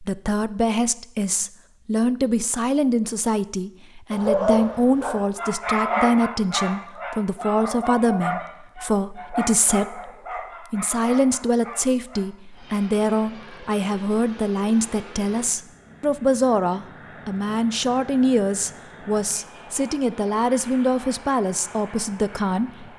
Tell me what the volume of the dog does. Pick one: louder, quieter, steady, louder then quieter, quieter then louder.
quieter.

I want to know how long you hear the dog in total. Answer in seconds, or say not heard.
8 s.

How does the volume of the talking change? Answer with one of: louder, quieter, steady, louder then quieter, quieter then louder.
steady.